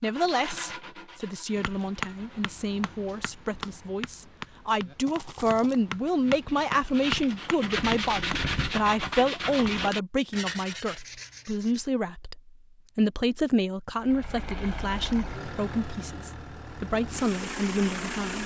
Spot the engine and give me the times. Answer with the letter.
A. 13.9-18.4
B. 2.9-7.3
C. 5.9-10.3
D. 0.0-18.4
A.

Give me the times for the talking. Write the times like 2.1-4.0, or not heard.
0.0-18.4.